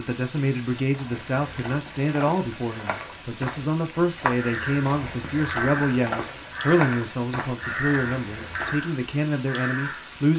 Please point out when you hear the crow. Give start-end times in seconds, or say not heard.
4.3-10.1.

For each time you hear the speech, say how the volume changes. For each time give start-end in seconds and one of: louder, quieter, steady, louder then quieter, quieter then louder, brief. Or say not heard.
0.0-10.3 steady.